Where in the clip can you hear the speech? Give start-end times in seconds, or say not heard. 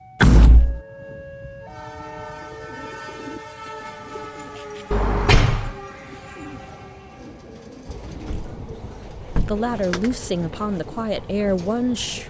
9.4-12.2.